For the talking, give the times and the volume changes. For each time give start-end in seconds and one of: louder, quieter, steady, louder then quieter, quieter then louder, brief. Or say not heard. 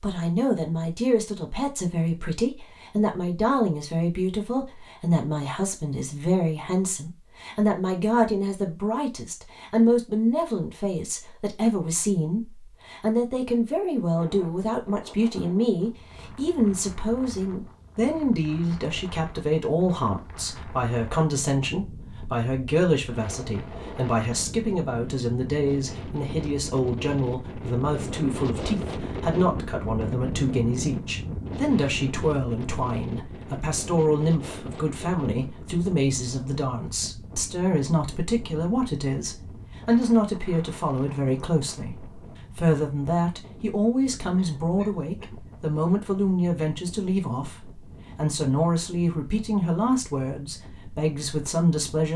0.0-52.1 steady.